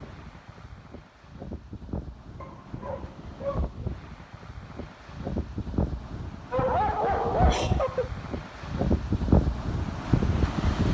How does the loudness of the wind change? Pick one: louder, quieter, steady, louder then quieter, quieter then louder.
louder.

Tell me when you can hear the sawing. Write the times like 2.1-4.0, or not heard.
not heard.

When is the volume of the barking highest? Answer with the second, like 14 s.
7 s.